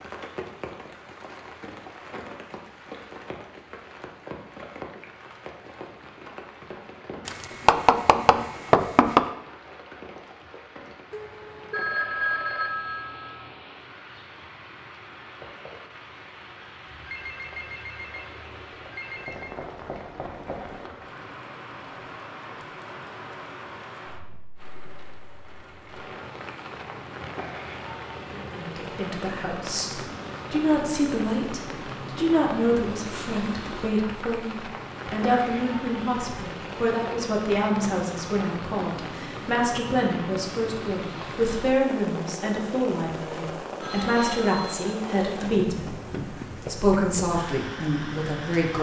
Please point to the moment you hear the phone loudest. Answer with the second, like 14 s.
12 s.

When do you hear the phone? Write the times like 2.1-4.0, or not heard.
11.1-13.5, 16.9-19.6, 43.8-44.9.